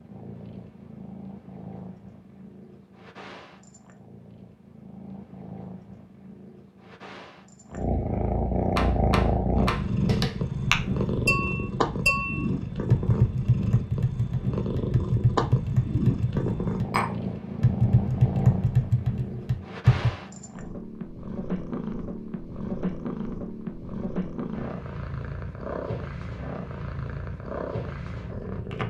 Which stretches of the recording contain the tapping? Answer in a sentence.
You can hear the tapping from 8.8 to 20.1 s.